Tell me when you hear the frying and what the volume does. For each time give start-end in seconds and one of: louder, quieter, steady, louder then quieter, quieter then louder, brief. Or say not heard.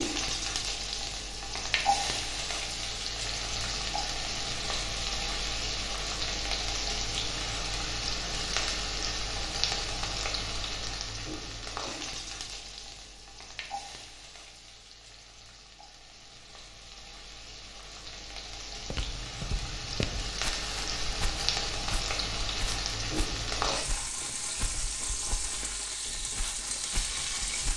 0.0-27.7 quieter then louder.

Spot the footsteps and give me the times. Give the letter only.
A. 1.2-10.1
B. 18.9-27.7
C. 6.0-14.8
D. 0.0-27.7
B.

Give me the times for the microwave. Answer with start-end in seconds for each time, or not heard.
not heard.